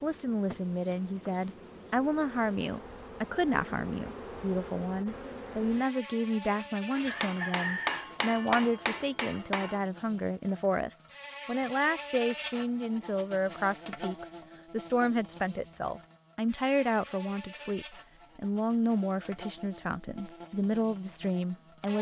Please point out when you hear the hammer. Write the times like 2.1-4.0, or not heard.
7.0-9.8.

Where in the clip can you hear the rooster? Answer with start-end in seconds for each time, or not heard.
7.0-8.6.